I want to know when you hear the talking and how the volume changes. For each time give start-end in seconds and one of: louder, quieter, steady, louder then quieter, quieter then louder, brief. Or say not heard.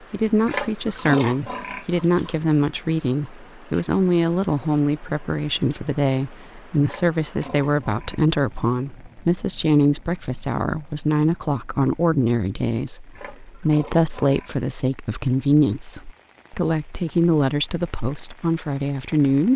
0.1-19.5 steady.